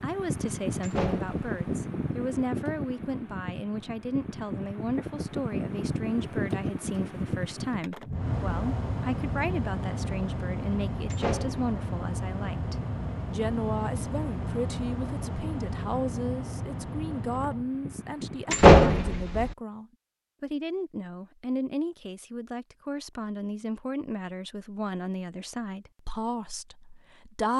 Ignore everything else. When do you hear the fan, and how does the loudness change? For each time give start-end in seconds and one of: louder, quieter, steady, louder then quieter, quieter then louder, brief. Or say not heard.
0.0-18.7 steady.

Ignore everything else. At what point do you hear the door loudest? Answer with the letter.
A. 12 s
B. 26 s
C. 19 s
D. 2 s
C.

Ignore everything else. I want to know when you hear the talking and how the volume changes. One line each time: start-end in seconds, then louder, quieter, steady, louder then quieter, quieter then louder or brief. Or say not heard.
0.0-27.5 steady.